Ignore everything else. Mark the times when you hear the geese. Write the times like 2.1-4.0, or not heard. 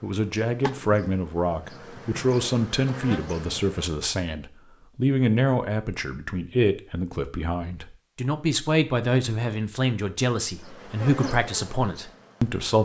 not heard.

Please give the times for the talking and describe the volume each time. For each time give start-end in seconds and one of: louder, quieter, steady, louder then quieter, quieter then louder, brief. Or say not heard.
0.0-12.8 steady.